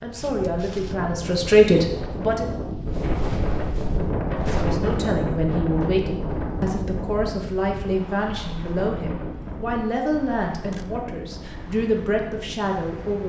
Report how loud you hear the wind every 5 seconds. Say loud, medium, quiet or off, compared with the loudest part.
loud, loud, medium.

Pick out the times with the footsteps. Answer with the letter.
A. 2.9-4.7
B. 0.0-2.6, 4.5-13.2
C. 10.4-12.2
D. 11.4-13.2
A.